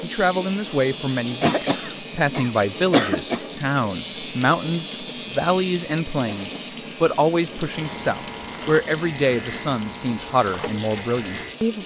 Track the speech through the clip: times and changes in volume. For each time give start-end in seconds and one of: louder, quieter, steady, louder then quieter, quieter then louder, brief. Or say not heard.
0.0-11.8 steady.